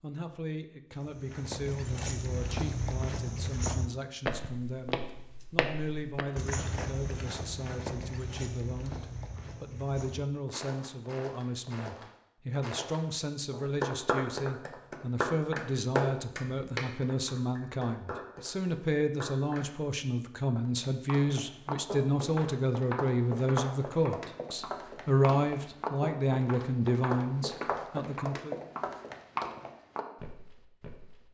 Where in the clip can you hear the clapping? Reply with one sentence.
The clapping can be heard from 13.6 to 19.8 s.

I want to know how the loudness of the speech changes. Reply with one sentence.
The volume of the speech goes up.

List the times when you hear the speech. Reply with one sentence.
You can hear the speech from 0.0 to 28.6 s.